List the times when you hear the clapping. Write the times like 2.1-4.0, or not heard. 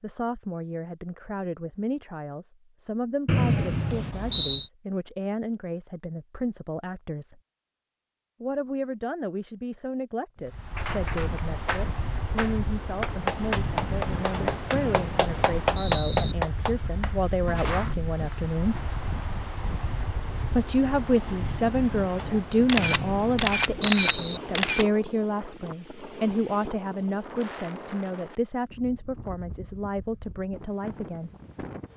10.8-17.9.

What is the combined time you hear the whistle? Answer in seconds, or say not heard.
5 s.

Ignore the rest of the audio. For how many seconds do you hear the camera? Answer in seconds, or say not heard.
2 s.